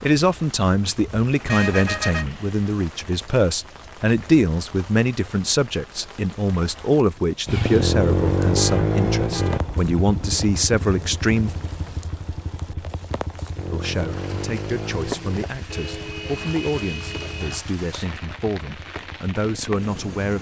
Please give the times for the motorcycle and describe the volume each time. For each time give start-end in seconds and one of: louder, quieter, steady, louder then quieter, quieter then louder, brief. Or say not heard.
7.5-20.3 quieter.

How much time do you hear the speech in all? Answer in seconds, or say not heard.
18 s.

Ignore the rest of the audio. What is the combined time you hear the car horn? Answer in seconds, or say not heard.
4 s.